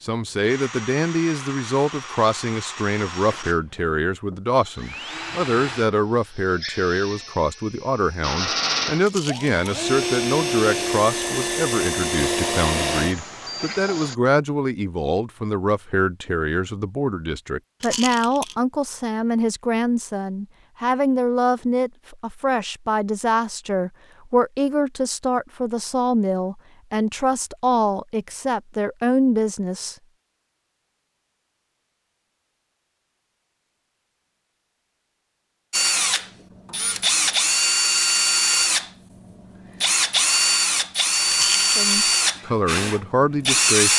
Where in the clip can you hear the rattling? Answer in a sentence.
You can hear the rattling from 9.0 to 9.6 s, from 17.8 to 18.6 s and from 41.2 to 41.9 s.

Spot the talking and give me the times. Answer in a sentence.
The talking can be heard from 0.0 to 29.9 s and from 41.8 to 43.9 s.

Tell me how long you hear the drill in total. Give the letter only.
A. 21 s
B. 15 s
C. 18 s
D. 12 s
A.